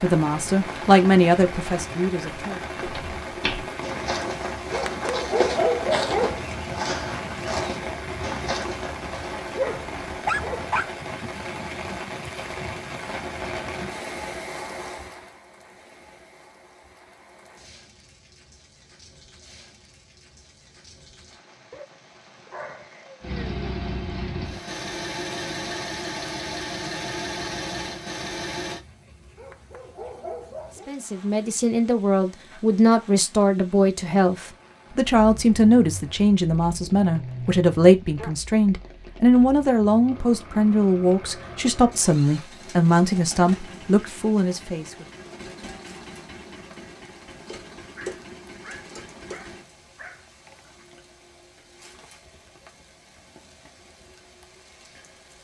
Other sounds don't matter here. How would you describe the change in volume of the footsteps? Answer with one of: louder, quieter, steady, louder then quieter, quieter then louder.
steady.